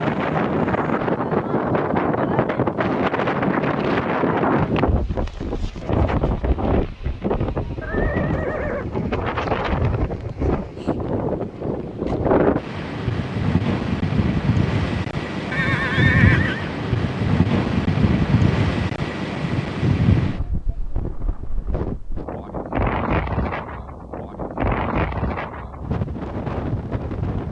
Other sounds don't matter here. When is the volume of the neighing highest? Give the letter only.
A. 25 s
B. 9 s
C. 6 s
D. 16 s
D.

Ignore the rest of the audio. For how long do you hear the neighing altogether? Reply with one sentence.
You can hear the neighing for 2 seconds altogether.